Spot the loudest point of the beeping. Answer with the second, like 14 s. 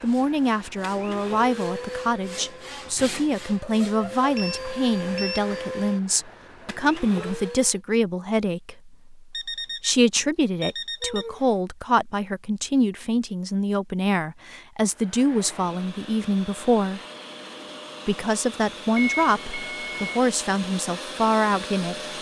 19 s.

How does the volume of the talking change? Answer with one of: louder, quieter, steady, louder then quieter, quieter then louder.
steady.